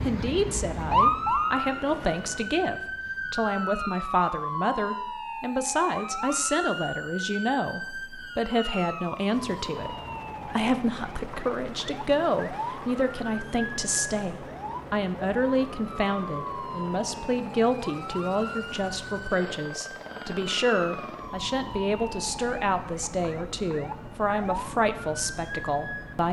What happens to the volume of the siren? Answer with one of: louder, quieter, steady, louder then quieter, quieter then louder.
quieter.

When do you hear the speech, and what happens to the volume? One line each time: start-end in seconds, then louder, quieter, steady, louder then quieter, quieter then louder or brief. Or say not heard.
0.0-26.2 steady.